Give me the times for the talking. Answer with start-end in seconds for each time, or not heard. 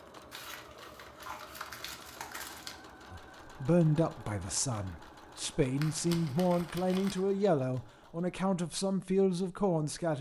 3.1-10.1.